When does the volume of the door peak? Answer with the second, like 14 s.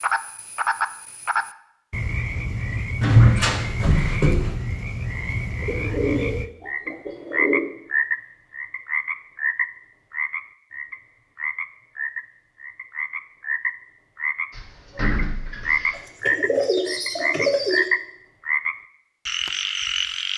3 s.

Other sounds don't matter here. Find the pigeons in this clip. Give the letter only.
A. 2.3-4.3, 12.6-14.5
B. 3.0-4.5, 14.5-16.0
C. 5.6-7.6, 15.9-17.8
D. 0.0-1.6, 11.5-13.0
C.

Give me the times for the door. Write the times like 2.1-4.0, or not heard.
3.0-4.5, 14.5-16.0.